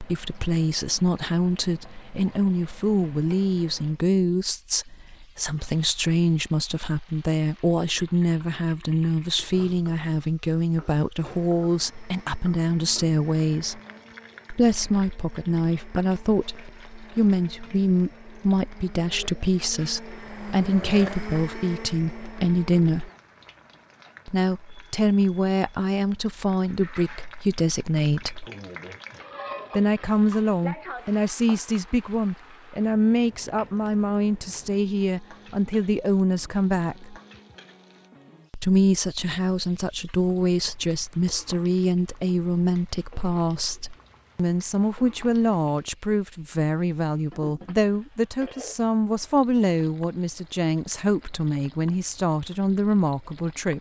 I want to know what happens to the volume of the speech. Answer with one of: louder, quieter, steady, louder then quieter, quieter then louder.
steady.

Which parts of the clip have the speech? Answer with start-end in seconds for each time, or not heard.
0.0-13.8, 14.5-23.1, 24.2-28.4, 29.7-37.1, 38.5-53.7.